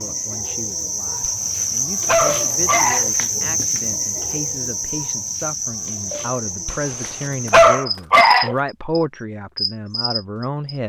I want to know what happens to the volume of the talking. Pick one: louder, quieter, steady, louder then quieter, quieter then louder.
louder.